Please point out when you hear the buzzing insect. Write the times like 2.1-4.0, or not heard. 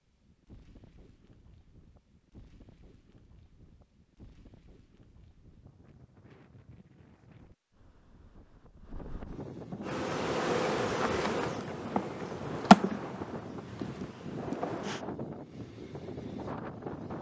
9.8-15.1.